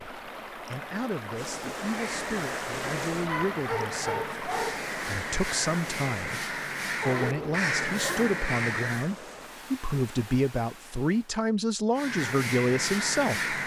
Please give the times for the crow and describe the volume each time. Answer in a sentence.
You can hear the crow from 1.8 to 9.1 s, getting louder; and briefly from 11.9 to 13.6 s.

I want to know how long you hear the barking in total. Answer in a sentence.
The barking can be heard for 3 seconds in total.